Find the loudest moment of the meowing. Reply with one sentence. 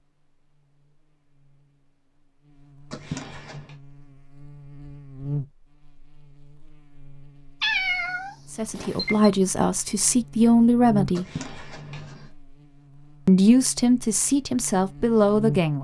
The loudest moment of the meowing is at 8 seconds.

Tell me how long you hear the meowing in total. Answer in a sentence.
The meowing can be heard for 2 seconds in total.